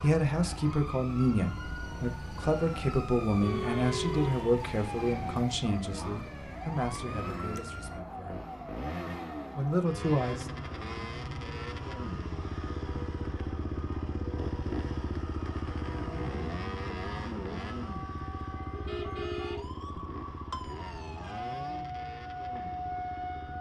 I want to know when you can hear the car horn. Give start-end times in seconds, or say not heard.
3.4-4.5, 18.7-19.9.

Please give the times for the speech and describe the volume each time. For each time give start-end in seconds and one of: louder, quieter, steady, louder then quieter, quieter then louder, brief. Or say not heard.
0.0-8.4 quieter
9.6-10.4 brief.